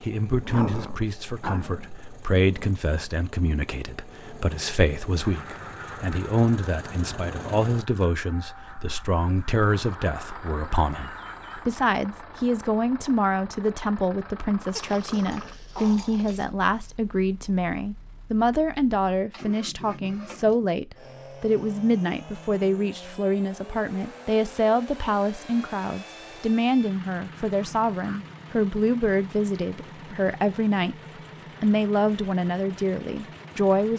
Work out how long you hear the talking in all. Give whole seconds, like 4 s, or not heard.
33 s.